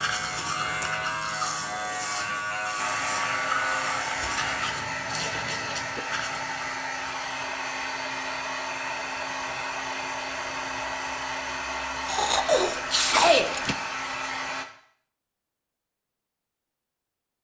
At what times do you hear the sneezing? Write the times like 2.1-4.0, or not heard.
12.1-13.8.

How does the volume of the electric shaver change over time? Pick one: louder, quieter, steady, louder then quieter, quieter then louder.
steady.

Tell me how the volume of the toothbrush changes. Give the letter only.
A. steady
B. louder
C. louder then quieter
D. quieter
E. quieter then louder
E.